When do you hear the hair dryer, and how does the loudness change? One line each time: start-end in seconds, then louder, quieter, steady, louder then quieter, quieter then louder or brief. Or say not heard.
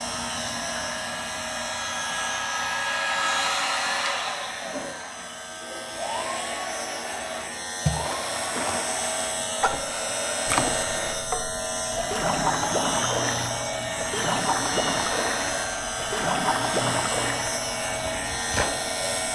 0.0-19.3 quieter.